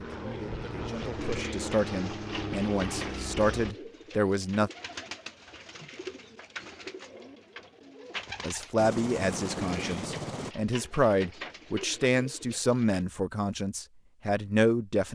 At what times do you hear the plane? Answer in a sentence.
You can hear the plane from 0.0 to 3.8 s and from 8.8 to 10.6 s.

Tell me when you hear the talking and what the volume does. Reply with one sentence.
The talking can be heard from 0.0 to 4.7 s, getting louder; and from 8.4 to 15.1 s, at a steady volume.